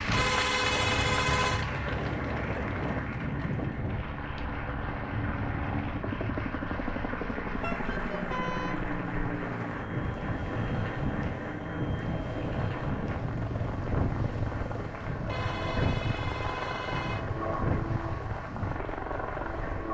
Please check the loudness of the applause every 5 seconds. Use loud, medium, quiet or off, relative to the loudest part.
loud, loud, medium, medium.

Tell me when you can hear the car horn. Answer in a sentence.
The car horn can be heard from 0.1 to 1.6 s, from 7.6 to 8.8 s and from 15.2 to 17.2 s.